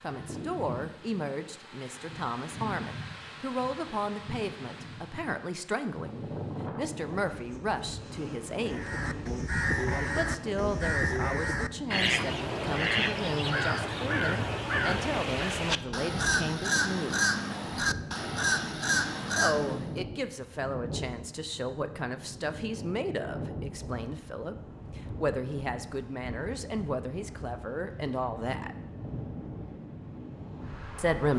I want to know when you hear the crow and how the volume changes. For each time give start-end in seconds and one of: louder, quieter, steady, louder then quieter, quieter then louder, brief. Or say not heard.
8.6-19.9 steady.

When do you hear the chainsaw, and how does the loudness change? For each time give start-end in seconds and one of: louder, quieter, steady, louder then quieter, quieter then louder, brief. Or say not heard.
not heard.